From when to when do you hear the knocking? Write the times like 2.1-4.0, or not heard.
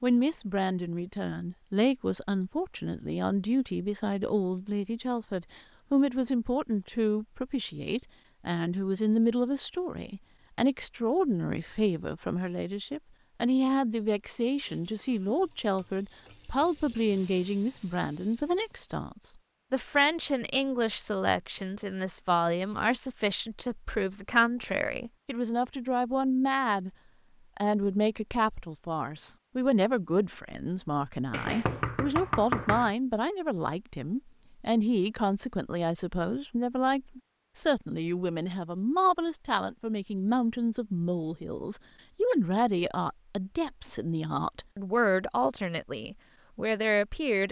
31.3-32.9.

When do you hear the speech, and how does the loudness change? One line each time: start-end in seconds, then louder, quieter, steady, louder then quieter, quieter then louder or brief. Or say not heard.
0.0-26.9 steady
27.6-47.4 steady.